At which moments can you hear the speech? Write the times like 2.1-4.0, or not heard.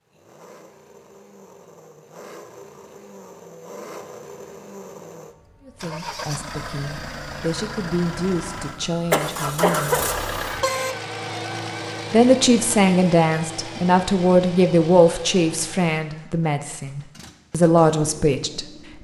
5.7-10.1, 12.1-18.6.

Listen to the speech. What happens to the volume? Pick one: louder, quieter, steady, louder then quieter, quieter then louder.
louder.